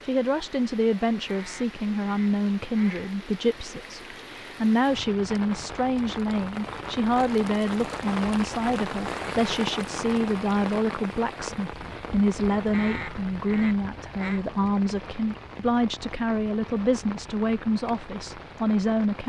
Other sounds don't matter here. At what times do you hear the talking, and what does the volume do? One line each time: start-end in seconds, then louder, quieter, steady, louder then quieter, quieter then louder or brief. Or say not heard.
0.1-19.2 steady.